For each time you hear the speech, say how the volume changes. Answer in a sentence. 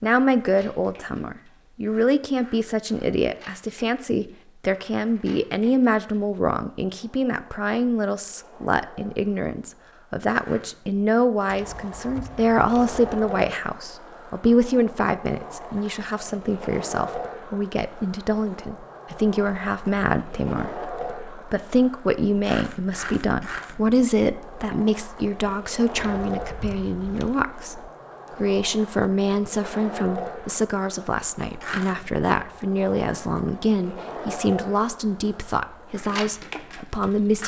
The speech can be heard from 0.0 to 37.4 s, at a steady volume.